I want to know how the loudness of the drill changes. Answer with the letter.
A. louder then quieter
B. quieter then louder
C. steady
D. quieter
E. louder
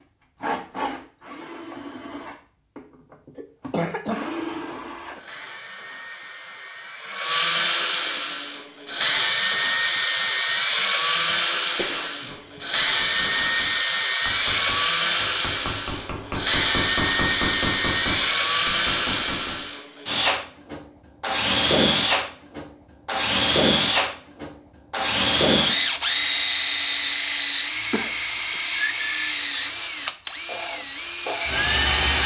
E.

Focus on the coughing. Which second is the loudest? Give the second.
4 s.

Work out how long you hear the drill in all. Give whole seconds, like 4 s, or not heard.
32 s.